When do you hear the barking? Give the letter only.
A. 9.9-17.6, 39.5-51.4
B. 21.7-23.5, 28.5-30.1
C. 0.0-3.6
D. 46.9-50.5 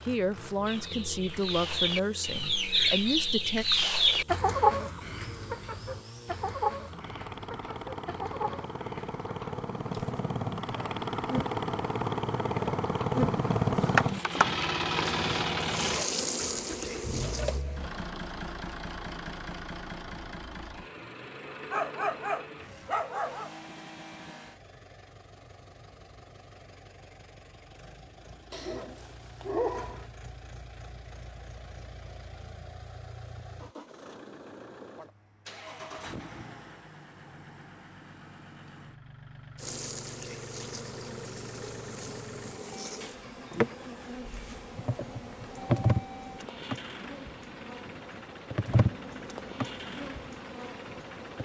B.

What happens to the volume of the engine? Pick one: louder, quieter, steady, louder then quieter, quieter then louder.
louder then quieter.